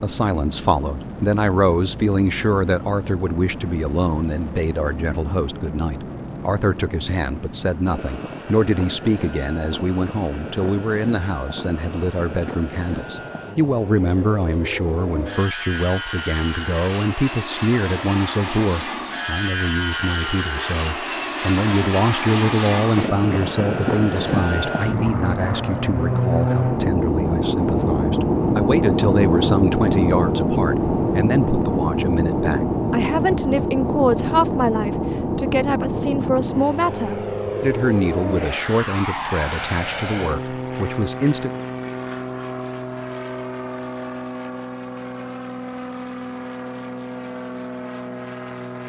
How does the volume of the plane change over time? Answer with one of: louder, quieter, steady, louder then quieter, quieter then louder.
louder then quieter.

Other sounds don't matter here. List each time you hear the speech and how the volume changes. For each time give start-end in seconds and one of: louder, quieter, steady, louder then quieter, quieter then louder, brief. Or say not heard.
0.0-41.6 steady.